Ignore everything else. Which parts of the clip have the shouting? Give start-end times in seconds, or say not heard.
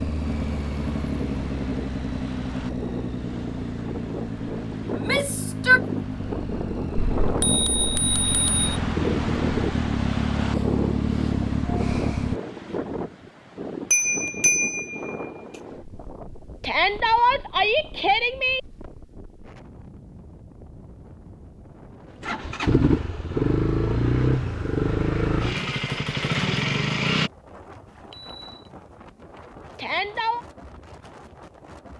4.9-5.8, 16.6-18.6, 29.8-30.4.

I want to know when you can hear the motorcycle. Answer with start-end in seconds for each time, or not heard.
0.0-12.4, 22.2-27.3.